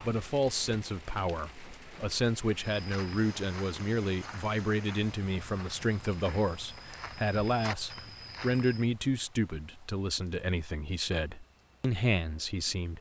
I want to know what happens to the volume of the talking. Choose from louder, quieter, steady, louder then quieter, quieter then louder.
steady.